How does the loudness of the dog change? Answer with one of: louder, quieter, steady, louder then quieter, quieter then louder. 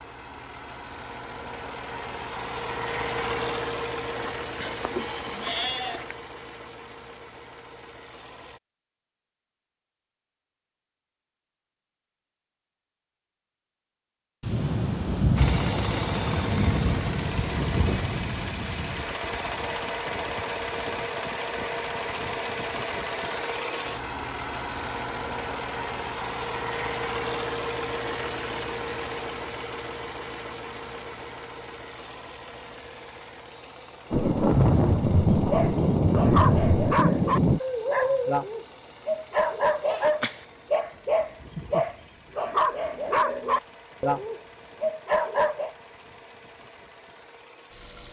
steady.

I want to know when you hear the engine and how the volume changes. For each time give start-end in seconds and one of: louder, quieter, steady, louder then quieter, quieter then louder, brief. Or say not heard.
0.0-8.6 louder then quieter
15.3-48.0 quieter.